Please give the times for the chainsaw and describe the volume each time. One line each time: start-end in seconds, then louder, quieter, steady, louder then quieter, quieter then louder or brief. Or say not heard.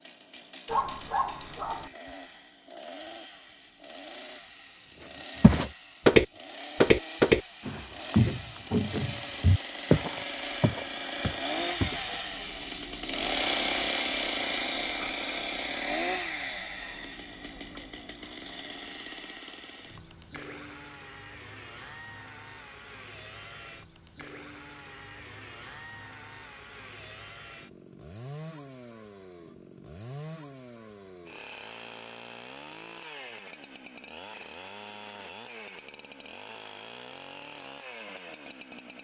0.0-38.9 louder then quieter.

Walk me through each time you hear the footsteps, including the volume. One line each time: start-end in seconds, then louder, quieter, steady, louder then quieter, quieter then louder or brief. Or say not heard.
5.4-12.0 quieter.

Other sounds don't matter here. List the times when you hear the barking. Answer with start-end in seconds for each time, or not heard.
0.7-1.9.